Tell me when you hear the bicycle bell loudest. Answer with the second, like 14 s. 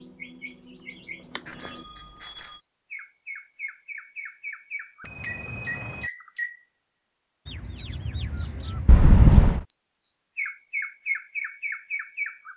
9 s.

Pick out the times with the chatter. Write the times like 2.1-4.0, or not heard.
not heard.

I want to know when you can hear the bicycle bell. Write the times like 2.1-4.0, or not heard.
1.4-2.6, 5.0-6.0, 8.8-9.6.